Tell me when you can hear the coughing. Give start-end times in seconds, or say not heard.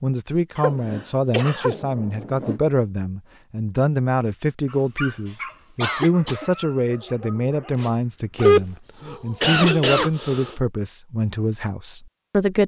0.6-1.8, 5.8-6.5, 8.4-10.6.